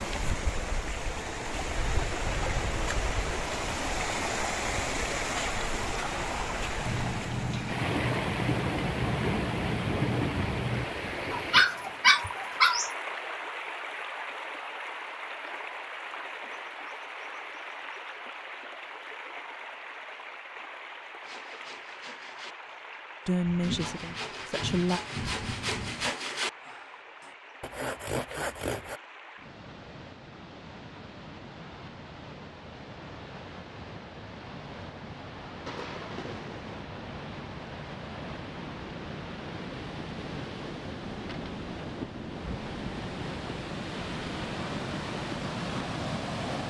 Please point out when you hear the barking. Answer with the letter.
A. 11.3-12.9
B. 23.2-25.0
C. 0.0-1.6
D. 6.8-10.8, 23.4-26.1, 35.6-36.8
A.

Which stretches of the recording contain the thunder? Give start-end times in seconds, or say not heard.
6.8-10.8, 23.4-26.1, 35.6-36.8.